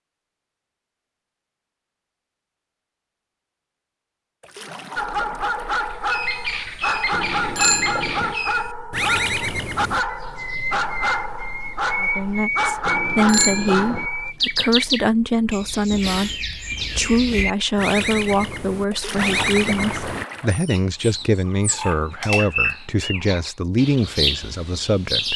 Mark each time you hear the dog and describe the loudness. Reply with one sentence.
You can hear the dog from 5.0 to 14.3 s, at a steady volume.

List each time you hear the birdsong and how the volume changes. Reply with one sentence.
The birdsong can be heard from 5.9 to 25.3 s, at a steady volume.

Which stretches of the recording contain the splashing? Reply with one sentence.
The splashing can be heard from 4.4 to 6.1 s and from 18.9 to 20.6 s.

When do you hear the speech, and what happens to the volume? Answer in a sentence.
The speech can be heard from 12.0 to 25.3 s, at a steady volume.